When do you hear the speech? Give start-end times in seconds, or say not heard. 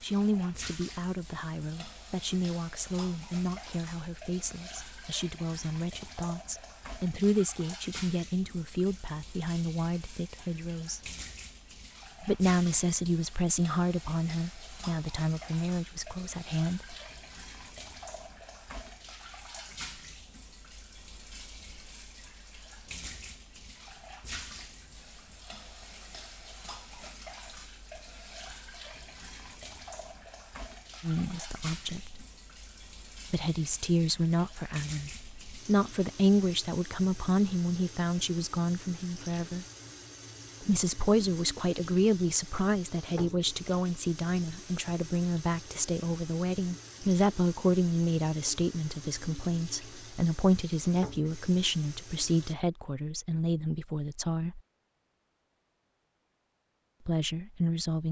0.0-11.0, 12.2-16.8, 31.0-32.2, 33.3-39.6, 40.6-54.6, 57.0-58.0.